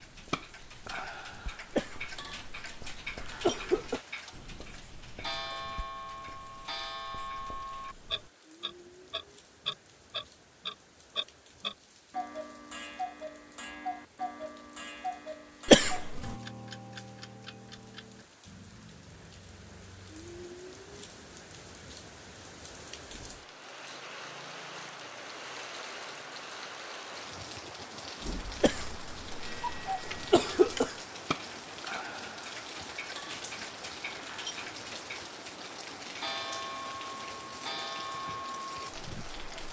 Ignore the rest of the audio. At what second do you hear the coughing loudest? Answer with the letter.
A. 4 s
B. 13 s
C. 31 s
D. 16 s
D.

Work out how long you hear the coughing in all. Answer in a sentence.
You can hear the coughing for 5 seconds altogether.